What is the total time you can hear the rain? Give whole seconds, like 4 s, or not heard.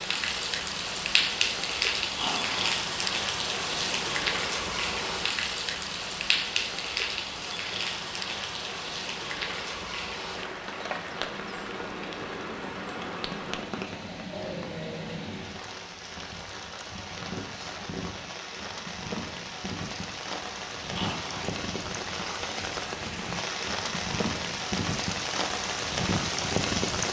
27 s.